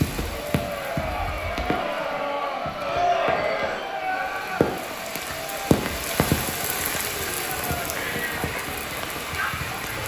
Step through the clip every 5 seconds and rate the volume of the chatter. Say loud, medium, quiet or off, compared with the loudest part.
loud, medium.